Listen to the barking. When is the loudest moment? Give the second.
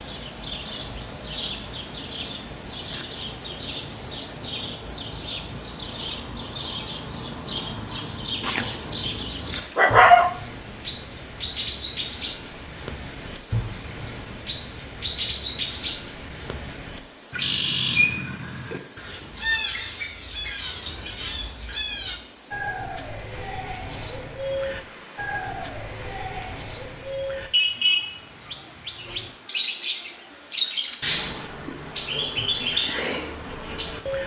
10 s.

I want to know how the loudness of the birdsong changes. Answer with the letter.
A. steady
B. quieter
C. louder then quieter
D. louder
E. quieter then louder
D.